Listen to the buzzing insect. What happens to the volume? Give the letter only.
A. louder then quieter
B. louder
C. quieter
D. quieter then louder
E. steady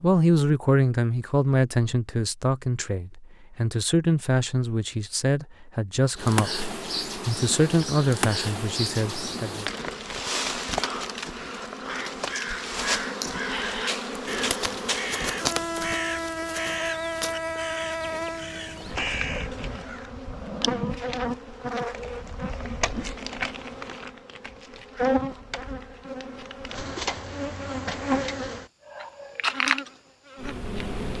E.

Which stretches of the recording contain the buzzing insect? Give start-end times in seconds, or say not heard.
6.2-31.1.